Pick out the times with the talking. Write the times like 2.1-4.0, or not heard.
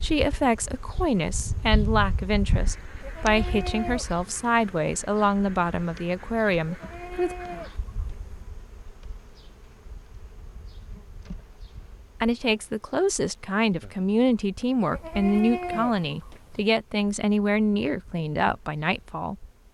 0.0-7.3, 12.2-19.4.